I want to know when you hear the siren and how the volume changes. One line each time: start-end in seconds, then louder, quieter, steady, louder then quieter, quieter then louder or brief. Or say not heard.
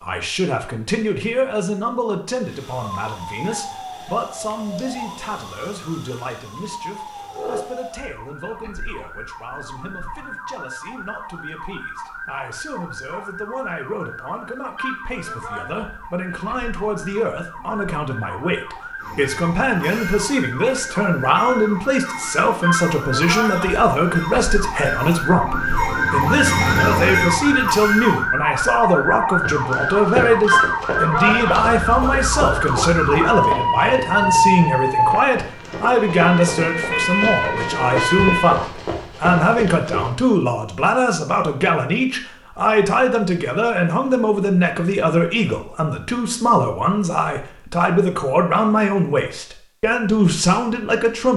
2.4-38.5 louder.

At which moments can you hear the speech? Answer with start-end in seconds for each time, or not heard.
0.0-51.3.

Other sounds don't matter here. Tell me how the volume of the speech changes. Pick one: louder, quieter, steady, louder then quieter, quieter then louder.
louder.